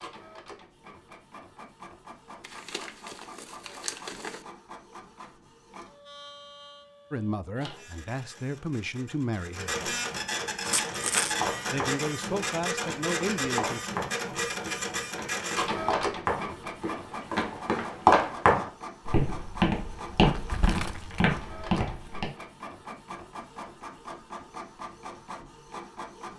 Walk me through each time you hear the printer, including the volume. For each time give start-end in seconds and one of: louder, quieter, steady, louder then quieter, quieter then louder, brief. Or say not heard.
0.0-26.3 louder then quieter.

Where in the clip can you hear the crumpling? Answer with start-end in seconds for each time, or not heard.
2.4-4.5, 10.7-11.3, 20.4-21.2.